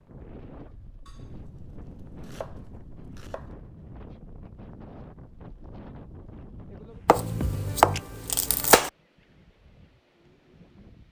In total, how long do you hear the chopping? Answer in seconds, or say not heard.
4 s.